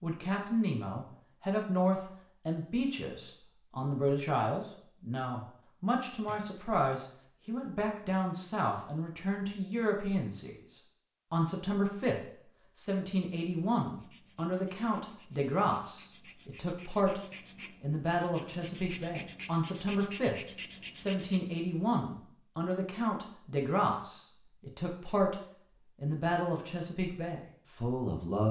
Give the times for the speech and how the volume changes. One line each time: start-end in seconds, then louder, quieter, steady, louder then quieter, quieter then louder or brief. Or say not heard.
0.0-17.2 steady
17.8-28.4 steady.